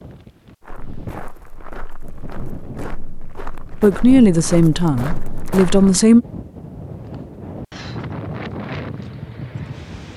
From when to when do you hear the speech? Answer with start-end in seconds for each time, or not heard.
3.8-6.2.